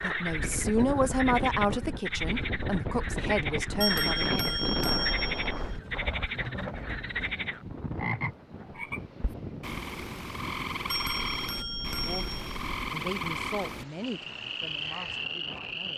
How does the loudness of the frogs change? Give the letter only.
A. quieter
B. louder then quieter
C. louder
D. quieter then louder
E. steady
E.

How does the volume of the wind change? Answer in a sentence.
The loudness of the wind goes down.